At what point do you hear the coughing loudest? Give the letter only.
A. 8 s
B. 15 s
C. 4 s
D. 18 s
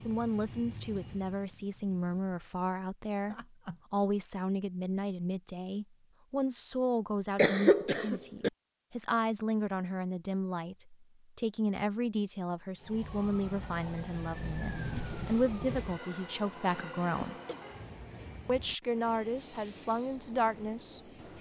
A.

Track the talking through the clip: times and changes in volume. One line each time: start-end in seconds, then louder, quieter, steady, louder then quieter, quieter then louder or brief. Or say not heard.
0.1-17.4 steady
18.4-21.0 brief.